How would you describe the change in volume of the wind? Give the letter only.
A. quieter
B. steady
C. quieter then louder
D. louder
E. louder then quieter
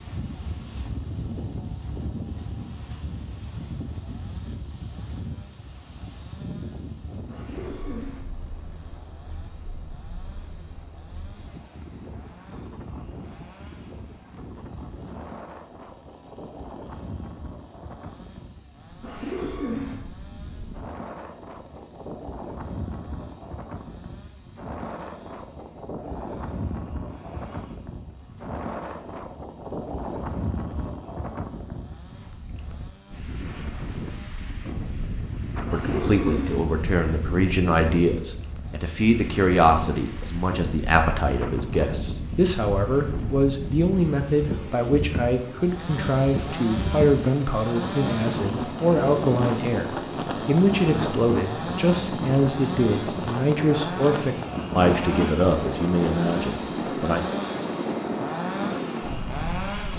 D.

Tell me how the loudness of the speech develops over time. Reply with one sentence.
The loudness of the speech stays about the same.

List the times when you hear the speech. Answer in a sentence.
You can hear the speech from 35.7 to 57.2 s.